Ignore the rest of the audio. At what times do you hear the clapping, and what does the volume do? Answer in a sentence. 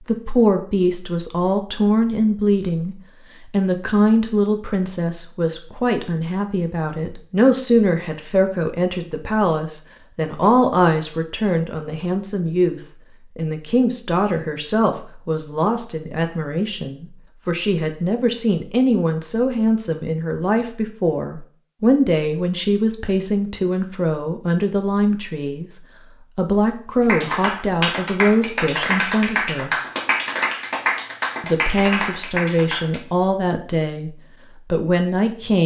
You can hear the clapping from 27.0 to 33.0 s, at a steady volume.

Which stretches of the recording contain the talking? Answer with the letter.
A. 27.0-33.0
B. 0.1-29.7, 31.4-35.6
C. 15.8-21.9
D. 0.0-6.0
B.